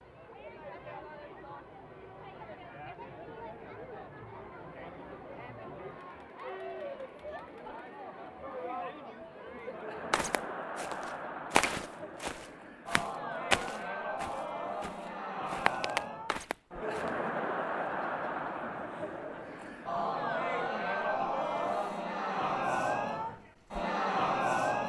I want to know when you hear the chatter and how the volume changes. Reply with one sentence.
The chatter can be heard from 0.0 to 24.8 s, getting louder.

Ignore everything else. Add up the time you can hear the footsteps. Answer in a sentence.
You can hear the footsteps for 7 seconds altogether.